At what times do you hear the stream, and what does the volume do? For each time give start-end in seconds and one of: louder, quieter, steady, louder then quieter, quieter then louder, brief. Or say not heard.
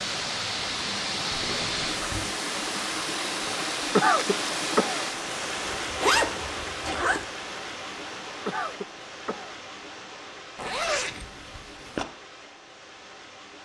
0.0-13.5 quieter.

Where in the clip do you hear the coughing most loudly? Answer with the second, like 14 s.
4 s.